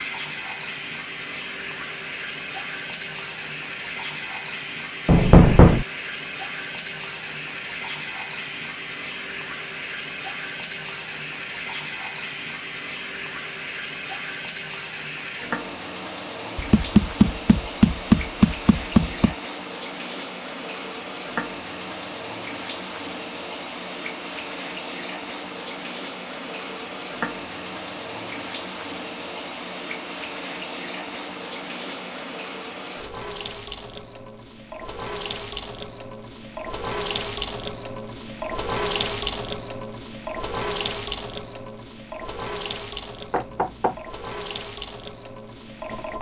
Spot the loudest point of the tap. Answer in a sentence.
The loudest moment of the tap is at 39 seconds.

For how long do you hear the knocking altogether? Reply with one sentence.
The knocking can be heard for 4 seconds in total.